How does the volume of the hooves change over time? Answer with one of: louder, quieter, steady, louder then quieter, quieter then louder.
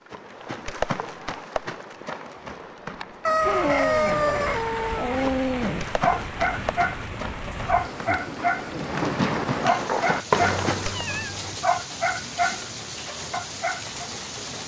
quieter then louder.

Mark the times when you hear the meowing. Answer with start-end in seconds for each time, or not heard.
10.4-11.6.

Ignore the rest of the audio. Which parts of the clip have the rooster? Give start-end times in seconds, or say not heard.
3.2-5.2.